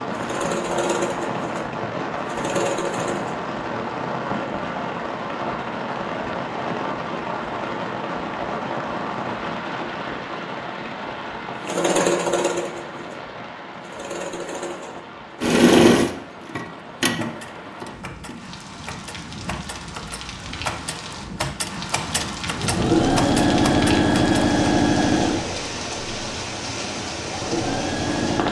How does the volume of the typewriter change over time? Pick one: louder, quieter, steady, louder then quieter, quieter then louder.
louder.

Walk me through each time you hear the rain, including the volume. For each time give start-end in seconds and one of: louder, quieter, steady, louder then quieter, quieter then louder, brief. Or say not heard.
0.0-28.4 quieter then louder.